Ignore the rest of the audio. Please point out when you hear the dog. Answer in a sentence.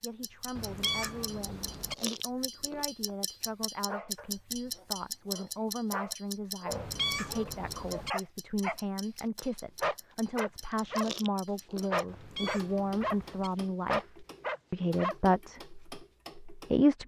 The dog can be heard from 3.9 to 8.8 s, from 9.8 to 11.1 s, from 11.9 to 13.2 s and from 13.8 to 15.2 s.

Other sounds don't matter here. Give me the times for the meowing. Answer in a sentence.
The meowing can be heard from 0.6 to 1.9 s, from 6.7 to 8.1 s and from 12.1 to 13.5 s.